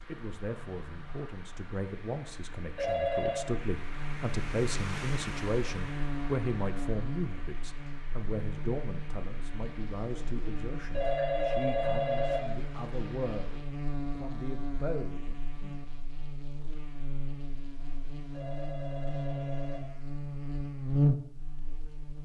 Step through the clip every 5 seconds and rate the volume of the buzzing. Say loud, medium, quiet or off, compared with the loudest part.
quiet, medium, medium, medium, loud.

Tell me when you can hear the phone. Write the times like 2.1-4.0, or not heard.
2.8-3.5, 10.9-12.4, 18.3-19.8.